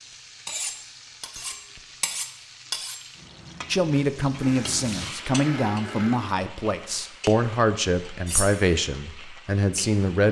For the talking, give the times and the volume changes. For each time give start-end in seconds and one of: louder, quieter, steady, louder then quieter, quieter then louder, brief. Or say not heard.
3.7-10.2 steady.